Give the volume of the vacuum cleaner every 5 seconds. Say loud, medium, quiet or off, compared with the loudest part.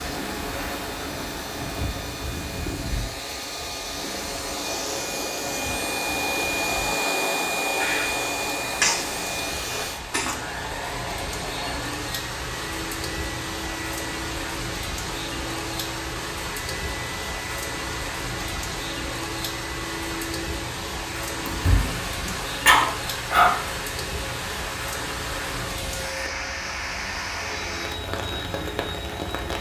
medium, loud, medium, medium, medium, medium.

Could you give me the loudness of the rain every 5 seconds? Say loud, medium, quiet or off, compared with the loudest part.
loud, medium, loud, loud, loud, loud.